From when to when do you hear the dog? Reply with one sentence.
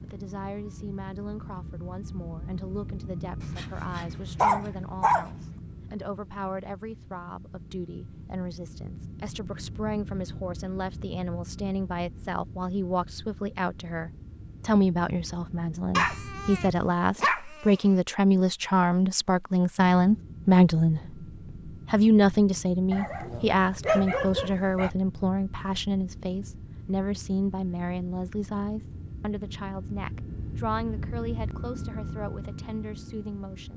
The dog can be heard from 3.4 to 5.3 s, from 15.9 to 17.8 s and from 22.9 to 24.9 s.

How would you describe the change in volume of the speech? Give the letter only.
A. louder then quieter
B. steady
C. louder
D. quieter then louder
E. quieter
A.